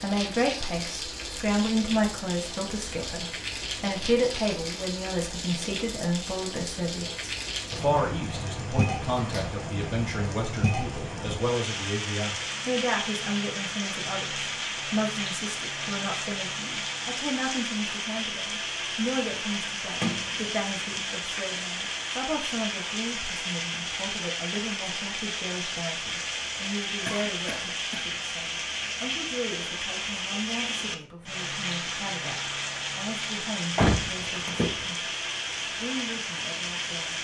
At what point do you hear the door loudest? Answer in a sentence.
The loudest moment of the door is at 34 seconds.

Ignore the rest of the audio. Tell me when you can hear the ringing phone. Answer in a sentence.
You can't hear the ringing phone here.